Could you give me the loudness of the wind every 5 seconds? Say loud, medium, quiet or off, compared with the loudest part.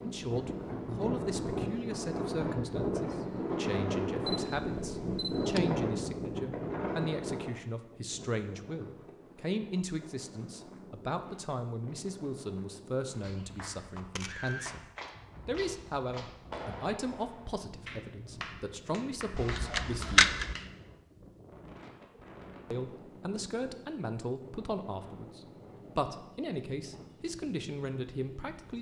loud, loud, quiet, quiet, quiet, quiet.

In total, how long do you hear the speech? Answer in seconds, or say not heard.
26 s.